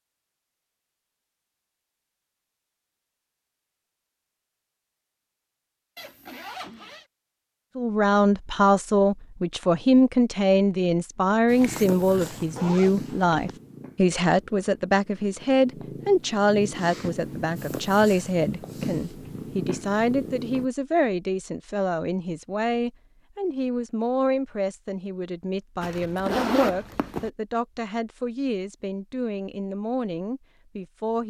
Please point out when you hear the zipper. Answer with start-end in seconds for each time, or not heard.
6.0-7.0, 11.6-13.6, 25.8-27.3.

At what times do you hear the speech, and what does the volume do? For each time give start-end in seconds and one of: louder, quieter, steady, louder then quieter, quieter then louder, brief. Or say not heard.
7.8-31.2 quieter.